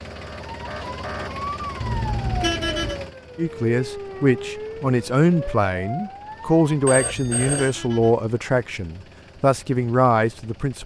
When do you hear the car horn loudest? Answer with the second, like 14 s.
3 s.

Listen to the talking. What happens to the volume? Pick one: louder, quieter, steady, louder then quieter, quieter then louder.
steady.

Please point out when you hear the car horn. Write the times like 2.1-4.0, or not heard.
1.8-3.0, 6.9-8.2.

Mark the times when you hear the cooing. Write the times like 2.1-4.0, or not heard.
not heard.